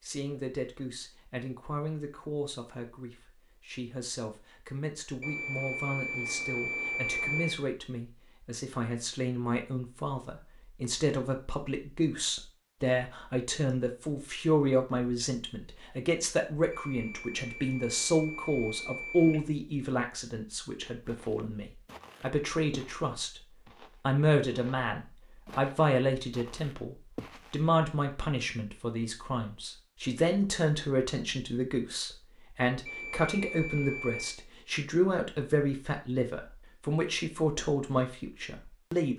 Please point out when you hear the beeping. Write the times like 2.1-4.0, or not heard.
5.2-7.6, 16.7-19.4, 32.9-34.4.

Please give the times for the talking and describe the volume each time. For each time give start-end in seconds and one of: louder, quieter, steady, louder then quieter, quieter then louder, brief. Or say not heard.
0.0-23.4 louder
24.1-39.1 steady.